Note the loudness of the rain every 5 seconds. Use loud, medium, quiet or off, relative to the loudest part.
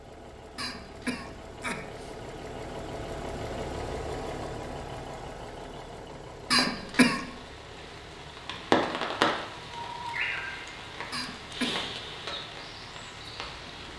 off, loud, medium.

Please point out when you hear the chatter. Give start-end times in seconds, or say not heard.
not heard.